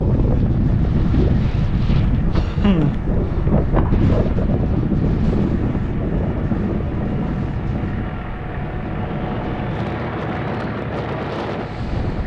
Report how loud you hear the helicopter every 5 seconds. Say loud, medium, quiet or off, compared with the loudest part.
medium, loud, loud.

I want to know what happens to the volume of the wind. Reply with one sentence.
The volume of the wind goes down.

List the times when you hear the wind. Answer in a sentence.
The wind can be heard from 0.0 to 12.2 s.